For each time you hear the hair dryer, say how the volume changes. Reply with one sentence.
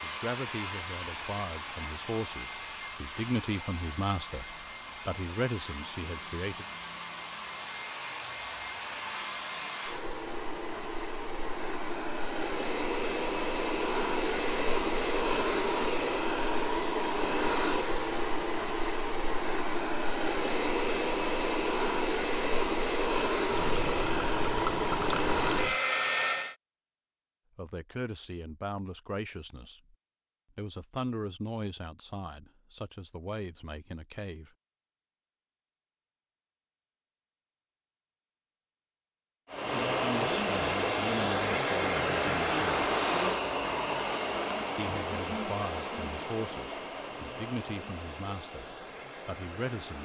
The hair dryer can be heard from 0.0 to 26.6 s, getting louder; and from 39.5 to 50.0 s, getting quieter.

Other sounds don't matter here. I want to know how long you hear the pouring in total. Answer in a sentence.
The pouring can be heard for 2 seconds in total.